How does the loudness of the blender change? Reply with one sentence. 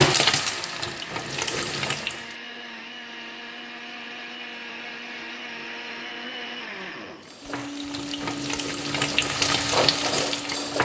The loudness of the blender stays about the same.